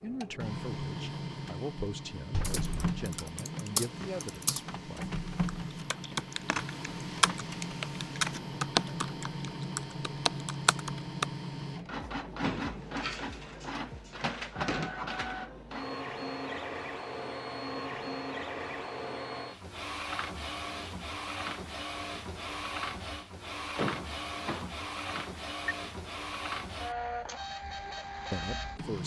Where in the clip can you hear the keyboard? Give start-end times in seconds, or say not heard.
2.4-4.6, 5.5-11.2.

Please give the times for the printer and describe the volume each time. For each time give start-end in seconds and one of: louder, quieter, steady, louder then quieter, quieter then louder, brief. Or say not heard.
0.0-29.0 steady.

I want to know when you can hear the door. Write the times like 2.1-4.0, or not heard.
2.3-3.0, 12.4-14.9, 23.7-25.8.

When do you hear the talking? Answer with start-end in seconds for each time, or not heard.
0.0-5.1, 28.3-29.0.